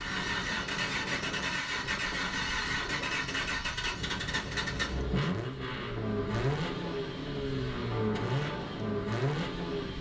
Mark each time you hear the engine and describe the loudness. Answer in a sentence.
The engine can be heard from 0.0 to 9.9 s, at a steady volume.